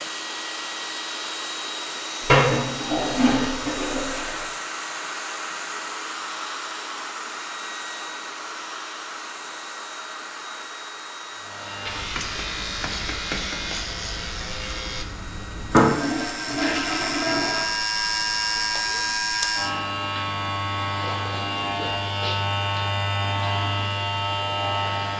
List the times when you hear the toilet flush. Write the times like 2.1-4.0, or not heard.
2.2-4.5, 15.7-17.6.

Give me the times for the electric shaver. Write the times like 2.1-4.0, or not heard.
11.3-25.1.